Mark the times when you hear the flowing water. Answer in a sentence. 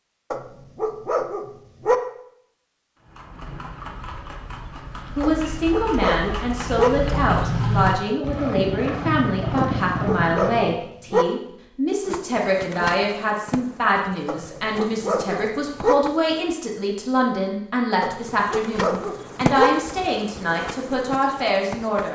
You can't hear the flowing water here.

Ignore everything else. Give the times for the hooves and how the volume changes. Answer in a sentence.
You can hear the hooves from 3.0 to 10.8 s, getting louder.